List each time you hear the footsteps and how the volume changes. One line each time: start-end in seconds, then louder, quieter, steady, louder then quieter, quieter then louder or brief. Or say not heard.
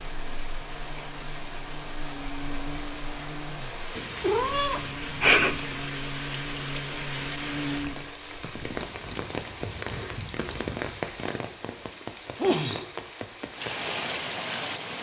not heard.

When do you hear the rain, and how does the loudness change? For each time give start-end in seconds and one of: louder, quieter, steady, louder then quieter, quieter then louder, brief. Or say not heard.
0.0-14.9 louder.